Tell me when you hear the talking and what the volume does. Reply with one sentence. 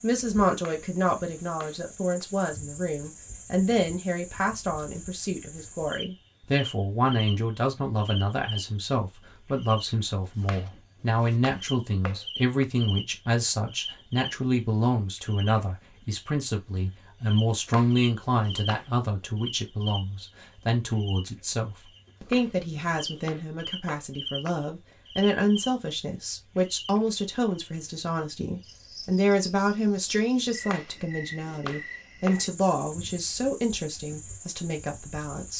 You can hear the talking from 0.0 to 35.5 s, at a steady volume.